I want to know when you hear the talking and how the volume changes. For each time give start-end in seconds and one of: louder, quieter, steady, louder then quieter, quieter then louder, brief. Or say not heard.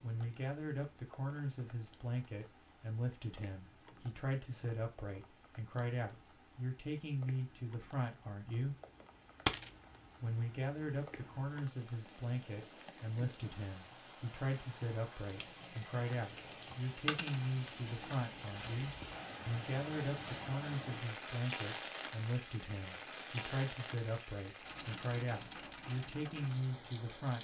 0.0-8.8 steady
10.2-27.4 steady.